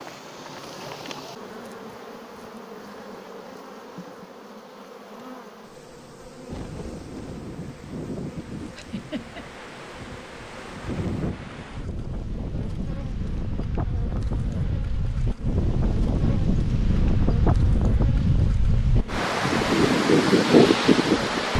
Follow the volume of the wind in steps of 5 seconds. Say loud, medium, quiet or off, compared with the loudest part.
off, quiet, quiet, medium, loud.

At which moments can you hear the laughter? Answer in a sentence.
The laughter can be heard from 8.8 to 9.4 s.